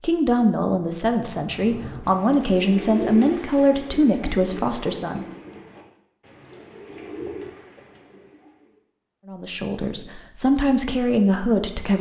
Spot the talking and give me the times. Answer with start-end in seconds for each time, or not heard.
0.0-5.2, 9.2-11.9.